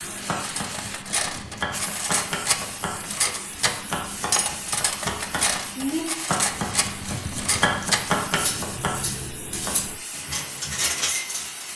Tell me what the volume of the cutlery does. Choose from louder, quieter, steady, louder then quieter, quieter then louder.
steady.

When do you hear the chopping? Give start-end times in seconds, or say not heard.
0.0-9.9.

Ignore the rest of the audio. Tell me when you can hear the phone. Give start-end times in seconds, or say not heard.
not heard.